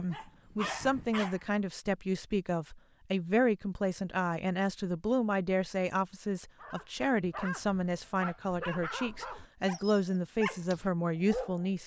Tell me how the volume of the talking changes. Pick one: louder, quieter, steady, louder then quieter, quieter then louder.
steady.